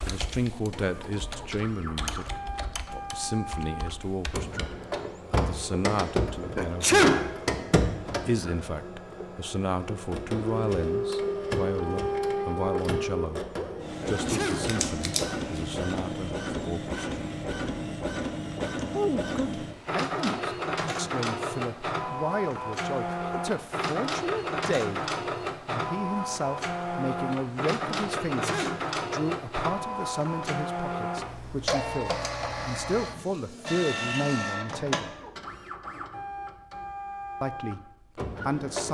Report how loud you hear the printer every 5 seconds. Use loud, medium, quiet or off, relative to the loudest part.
medium, loud, loud, loud, loud, loud, loud, medium.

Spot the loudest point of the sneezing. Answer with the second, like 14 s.
7 s.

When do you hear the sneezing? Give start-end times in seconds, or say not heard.
6.5-7.3, 14.1-14.8, 28.4-28.9.